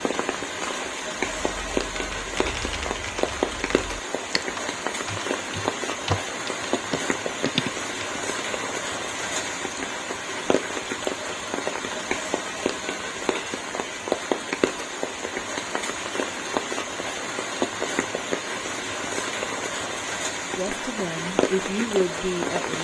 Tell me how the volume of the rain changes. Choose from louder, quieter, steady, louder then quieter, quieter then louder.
steady.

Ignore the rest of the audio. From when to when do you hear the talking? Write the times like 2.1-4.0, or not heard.
20.6-22.7.